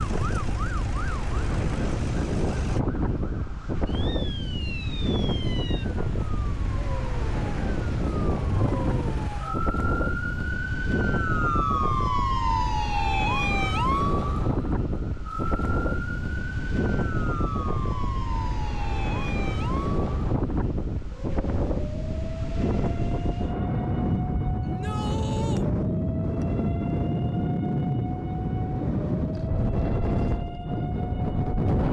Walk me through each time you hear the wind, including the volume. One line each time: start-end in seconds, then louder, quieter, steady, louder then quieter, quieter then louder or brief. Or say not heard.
0.0-31.8 steady.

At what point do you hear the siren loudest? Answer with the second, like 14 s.
12 s.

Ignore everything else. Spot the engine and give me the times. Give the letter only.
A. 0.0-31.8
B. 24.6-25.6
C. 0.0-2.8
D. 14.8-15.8
C.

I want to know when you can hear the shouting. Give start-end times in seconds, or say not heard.
24.6-25.6.